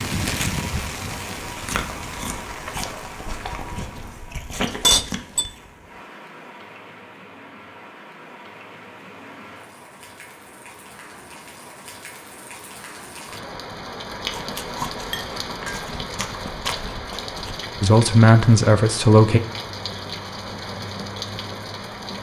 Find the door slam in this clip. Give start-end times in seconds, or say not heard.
not heard.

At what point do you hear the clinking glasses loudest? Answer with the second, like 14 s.
5 s.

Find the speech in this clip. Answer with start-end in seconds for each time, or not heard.
17.8-19.4.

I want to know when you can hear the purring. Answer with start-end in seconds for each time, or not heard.
not heard.